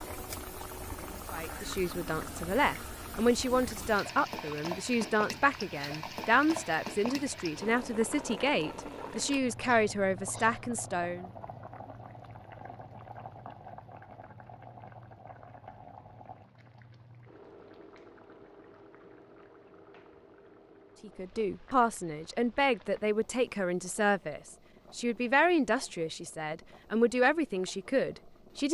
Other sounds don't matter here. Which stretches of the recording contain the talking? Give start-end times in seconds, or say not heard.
1.3-11.3, 21.0-28.7.